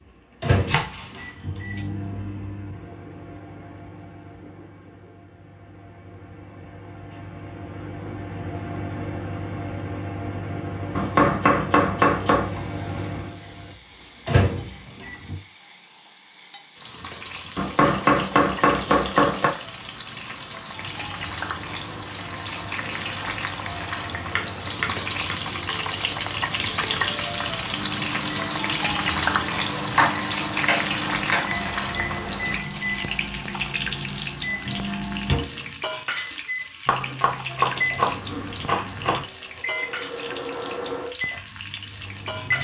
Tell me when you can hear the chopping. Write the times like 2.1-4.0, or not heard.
0.6-1.8, 10.9-12.5, 17.6-19.5, 24.4-25.4, 29.8-31.4, 36.9-39.2.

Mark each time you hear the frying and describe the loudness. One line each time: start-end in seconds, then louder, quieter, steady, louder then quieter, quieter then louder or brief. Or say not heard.
12.3-42.5 louder then quieter.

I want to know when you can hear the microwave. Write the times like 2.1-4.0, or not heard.
0.4-15.4, 20.7-42.5.